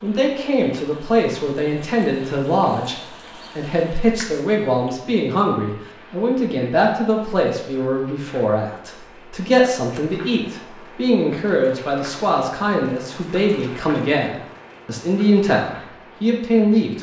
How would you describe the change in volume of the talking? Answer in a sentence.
The loudness of the talking stays about the same.